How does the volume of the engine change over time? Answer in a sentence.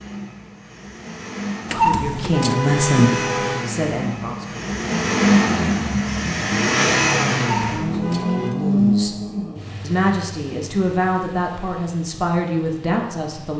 The volume of the engine goes up, then down.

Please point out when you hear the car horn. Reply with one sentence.
The car horn can be heard from 1.6 to 3.6 s and from 7.5 to 8.6 s.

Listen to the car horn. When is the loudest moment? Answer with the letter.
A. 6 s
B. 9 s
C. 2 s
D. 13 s
C.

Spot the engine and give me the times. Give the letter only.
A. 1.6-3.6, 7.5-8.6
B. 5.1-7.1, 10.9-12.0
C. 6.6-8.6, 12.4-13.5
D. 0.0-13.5
D.